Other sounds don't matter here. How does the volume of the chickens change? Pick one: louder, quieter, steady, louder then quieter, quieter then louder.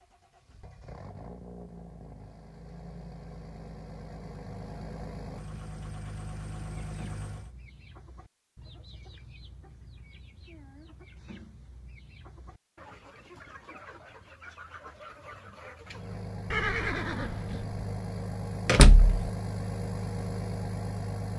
louder.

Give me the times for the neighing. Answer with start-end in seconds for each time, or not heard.
16.5-17.8.